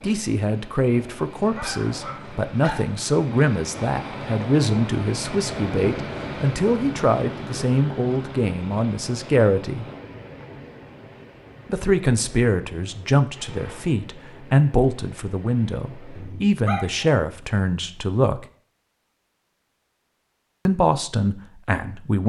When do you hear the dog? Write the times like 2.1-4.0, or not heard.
1.4-3.0, 16.1-17.1.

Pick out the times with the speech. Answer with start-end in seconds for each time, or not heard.
0.0-9.8, 11.7-18.4, 20.6-22.2.